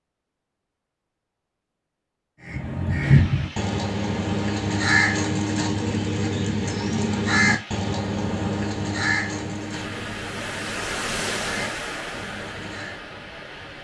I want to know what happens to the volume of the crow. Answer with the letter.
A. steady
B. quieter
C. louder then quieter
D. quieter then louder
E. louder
B.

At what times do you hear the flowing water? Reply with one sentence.
You can hear the flowing water from 3.0 to 13.7 s.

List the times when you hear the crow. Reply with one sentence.
You can hear the crow from 2.4 to 13.0 s.